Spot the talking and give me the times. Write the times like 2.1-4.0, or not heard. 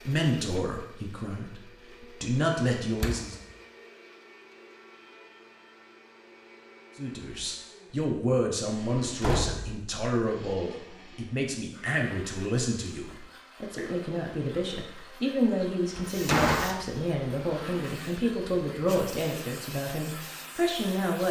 0.1-3.4, 7.0-21.2.